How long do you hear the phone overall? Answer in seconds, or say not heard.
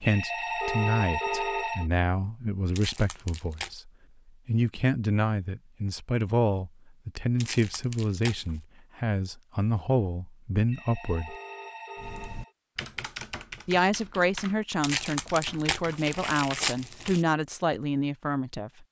4 s.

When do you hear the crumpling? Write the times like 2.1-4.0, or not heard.
2.8-3.8, 7.3-8.6, 14.8-17.2.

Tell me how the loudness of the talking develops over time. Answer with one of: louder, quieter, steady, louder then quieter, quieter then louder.
steady.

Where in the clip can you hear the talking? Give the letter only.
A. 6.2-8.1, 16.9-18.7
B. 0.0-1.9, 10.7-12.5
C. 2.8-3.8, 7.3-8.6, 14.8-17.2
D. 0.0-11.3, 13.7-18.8
D.